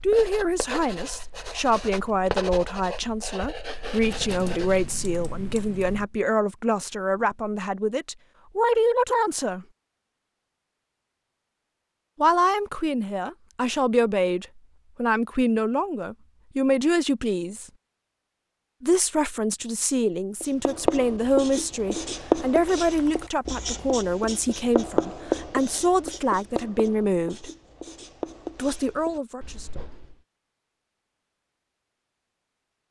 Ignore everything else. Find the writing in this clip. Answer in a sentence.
You can hear the writing from 0.0 to 5.0 s and from 20.4 to 30.1 s.